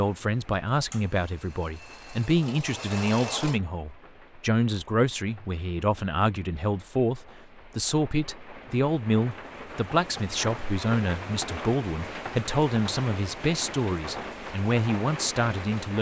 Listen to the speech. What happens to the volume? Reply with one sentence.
The loudness of the speech stays about the same.